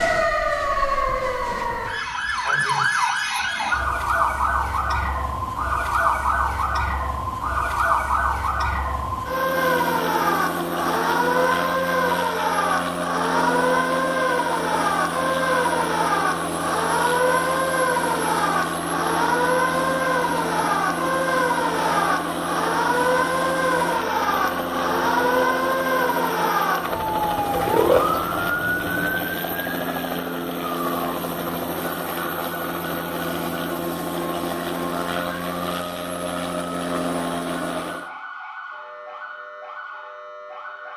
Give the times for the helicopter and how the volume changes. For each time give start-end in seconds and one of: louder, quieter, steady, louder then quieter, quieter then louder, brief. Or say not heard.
9.2-38.1 steady.